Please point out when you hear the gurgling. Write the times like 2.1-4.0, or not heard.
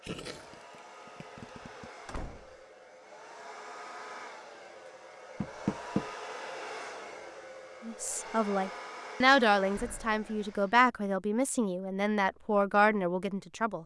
0.0-1.9.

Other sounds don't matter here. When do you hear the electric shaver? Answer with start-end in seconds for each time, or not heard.
not heard.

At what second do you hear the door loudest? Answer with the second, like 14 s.
6 s.